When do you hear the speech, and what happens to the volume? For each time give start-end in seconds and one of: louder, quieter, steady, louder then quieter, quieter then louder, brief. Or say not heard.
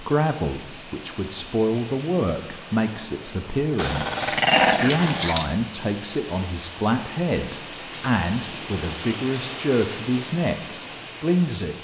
0.0-11.7 steady.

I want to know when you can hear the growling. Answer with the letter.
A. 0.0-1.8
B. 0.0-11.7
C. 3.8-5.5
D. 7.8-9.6
C.